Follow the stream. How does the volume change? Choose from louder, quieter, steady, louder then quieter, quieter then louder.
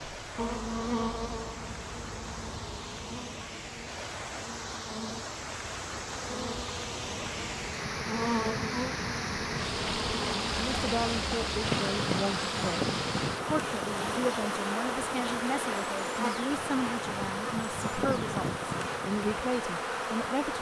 louder then quieter.